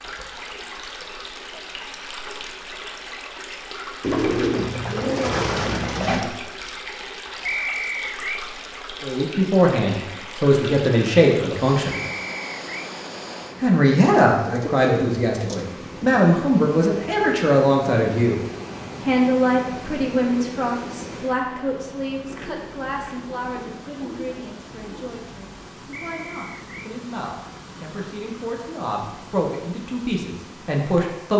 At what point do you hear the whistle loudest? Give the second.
8 s.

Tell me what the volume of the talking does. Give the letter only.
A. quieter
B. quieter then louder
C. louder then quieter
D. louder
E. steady
B.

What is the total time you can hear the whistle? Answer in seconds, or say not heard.
3 s.